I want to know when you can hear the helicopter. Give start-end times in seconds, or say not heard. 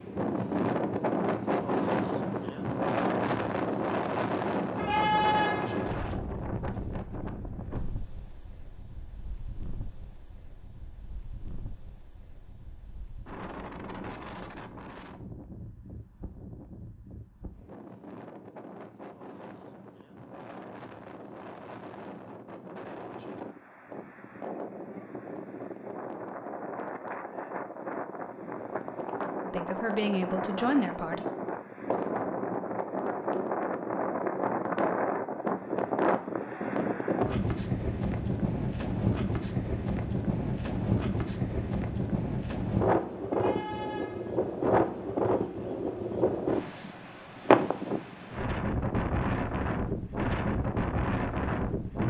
not heard.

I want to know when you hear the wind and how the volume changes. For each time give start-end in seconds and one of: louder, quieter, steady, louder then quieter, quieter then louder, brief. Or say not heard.
0.0-52.0 quieter then louder.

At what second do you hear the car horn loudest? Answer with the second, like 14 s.
5 s.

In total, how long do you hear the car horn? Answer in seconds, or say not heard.
3 s.